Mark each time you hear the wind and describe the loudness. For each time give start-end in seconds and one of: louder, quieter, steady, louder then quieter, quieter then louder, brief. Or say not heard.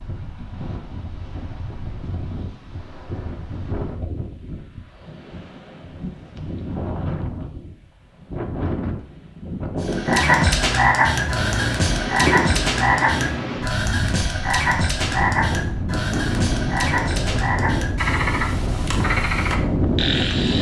0.0-20.5 louder.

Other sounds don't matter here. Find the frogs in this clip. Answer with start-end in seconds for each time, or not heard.
9.8-20.5.